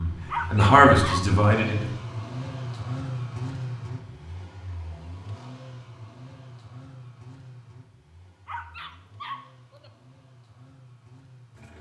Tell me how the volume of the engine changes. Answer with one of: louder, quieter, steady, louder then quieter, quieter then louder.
quieter.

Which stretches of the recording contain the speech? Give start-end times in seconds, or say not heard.
0.0-1.9.